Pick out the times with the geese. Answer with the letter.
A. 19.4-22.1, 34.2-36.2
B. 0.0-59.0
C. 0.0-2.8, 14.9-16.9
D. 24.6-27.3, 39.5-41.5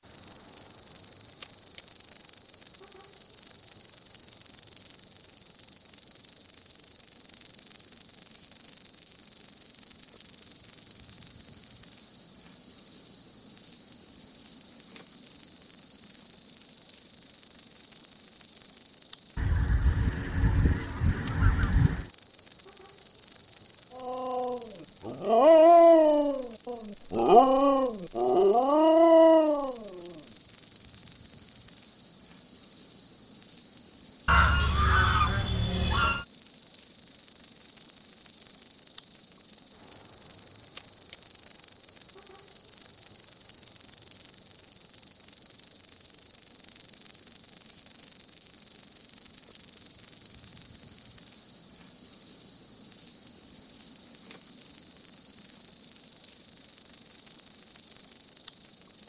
A.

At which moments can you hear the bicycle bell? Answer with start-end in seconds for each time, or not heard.
not heard.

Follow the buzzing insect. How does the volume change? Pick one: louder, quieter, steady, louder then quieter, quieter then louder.
steady.